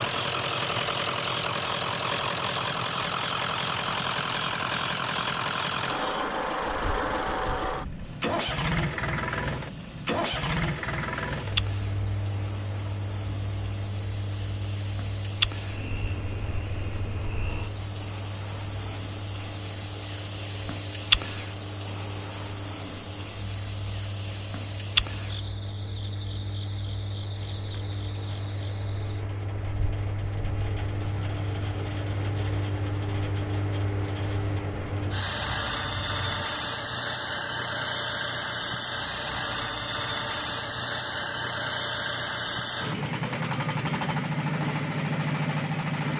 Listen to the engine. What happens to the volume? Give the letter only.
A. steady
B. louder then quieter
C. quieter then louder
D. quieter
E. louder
C.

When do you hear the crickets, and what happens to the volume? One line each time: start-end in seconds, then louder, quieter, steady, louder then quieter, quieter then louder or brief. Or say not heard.
0.0-36.5 louder then quieter.